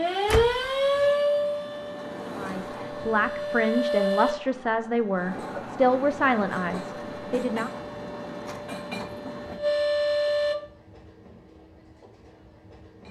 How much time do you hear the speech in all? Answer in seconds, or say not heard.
5 s.